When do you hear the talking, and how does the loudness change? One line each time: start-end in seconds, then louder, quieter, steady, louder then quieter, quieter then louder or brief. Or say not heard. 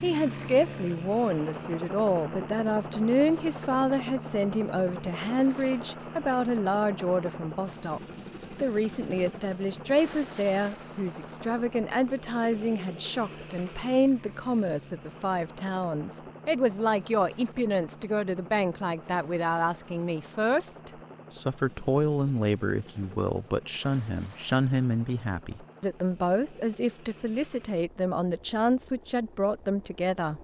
0.0-30.3 steady.